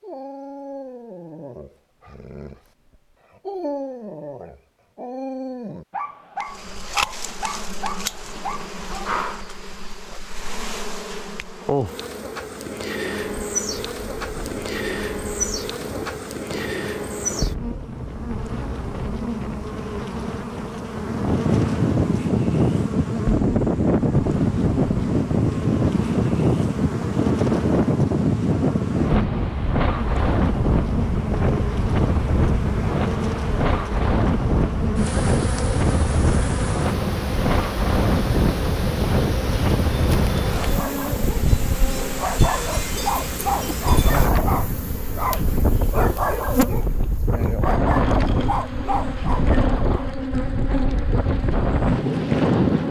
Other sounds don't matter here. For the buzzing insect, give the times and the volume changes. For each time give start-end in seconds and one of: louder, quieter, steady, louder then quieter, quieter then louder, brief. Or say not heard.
6.5-52.8 steady.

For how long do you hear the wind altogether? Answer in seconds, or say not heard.
40 s.